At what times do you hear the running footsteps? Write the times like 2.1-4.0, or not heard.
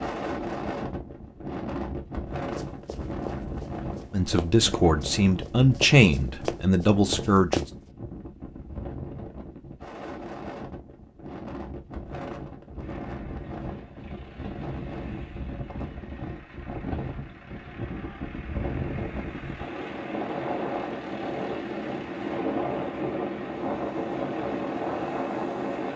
2.5-7.7.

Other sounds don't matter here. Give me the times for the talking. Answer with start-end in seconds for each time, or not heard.
4.1-7.7.